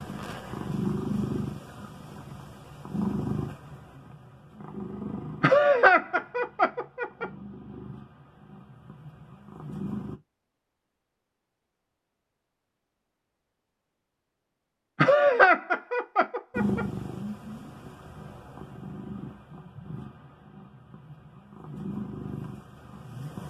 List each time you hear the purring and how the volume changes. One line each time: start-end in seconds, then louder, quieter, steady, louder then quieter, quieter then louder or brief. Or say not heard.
0.0-10.2 quieter
16.6-23.4 quieter then louder.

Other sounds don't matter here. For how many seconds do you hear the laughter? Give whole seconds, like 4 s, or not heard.
4 s.